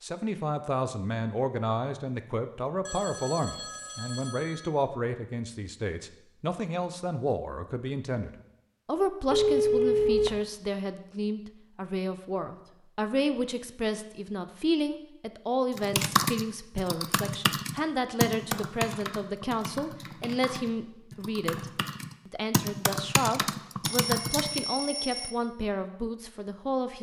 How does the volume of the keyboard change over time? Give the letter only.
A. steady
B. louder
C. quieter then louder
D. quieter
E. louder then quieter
C.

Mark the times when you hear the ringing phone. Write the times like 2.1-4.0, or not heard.
2.9-4.7, 9.3-10.4, 23.8-25.4.